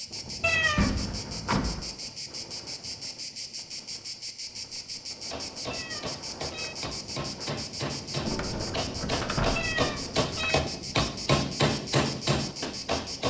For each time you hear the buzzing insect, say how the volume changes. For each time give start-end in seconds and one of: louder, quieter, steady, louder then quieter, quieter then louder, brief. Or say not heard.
0.0-13.2 steady.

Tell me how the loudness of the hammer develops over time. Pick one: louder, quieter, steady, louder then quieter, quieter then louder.
louder.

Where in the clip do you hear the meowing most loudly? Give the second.
1 s.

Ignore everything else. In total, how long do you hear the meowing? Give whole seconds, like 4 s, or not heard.
3 s.